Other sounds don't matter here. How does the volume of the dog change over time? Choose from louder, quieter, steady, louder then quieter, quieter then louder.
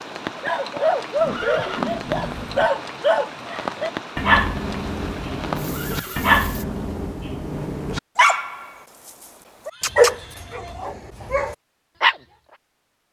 steady.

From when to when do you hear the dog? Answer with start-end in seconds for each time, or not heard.
0.3-12.2.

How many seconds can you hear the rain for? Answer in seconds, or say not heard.
7 s.